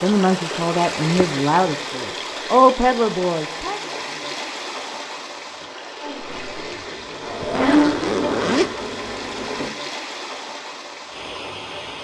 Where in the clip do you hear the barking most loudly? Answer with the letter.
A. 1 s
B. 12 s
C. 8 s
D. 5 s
C.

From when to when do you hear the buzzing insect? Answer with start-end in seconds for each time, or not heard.
6.2-9.7.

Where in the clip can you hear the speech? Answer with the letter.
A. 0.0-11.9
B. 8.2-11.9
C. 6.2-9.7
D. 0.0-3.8
D.